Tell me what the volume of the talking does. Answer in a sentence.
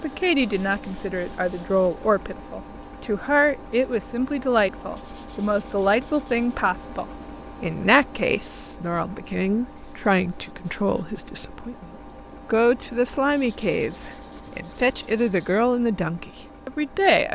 The loudness of the talking stays about the same.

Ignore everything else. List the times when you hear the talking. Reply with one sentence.
You can hear the talking from 0.0 to 11.8 s and from 12.4 to 17.3 s.